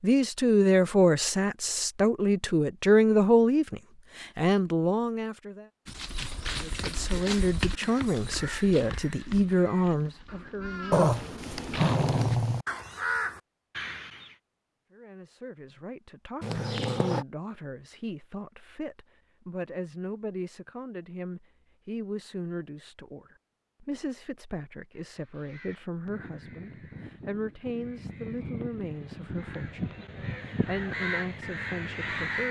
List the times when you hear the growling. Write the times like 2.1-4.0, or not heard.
10.9-12.7, 16.4-17.2.